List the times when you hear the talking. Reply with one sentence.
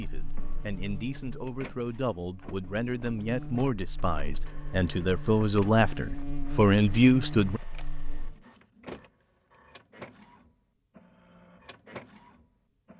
You can hear the talking from 0.0 to 7.6 s.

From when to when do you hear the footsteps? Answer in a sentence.
The footsteps can't be heard in this clip.